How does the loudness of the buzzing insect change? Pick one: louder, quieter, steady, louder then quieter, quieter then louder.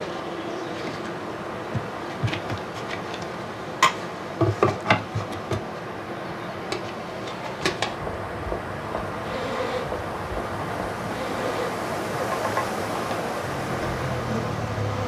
louder then quieter.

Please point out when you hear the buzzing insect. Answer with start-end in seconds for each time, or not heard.
0.0-15.0.